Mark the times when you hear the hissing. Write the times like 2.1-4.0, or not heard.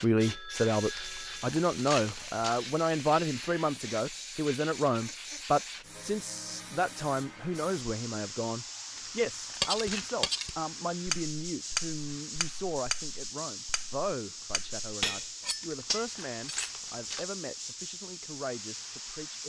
0.0-19.4.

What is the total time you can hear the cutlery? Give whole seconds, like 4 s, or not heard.
7 s.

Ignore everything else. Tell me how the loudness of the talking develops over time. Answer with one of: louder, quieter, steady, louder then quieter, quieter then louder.
quieter.